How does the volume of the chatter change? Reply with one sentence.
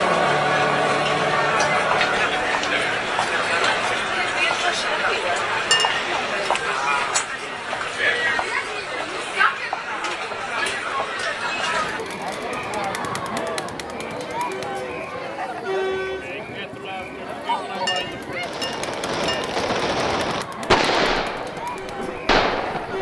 The loudness of the chatter goes down.